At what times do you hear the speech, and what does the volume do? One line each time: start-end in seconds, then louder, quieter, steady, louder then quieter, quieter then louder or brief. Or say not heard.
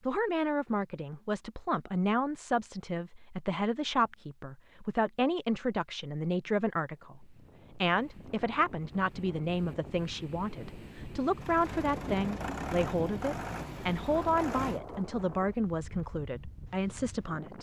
0.1-17.5 steady.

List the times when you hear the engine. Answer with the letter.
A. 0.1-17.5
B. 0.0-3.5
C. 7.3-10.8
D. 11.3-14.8
D.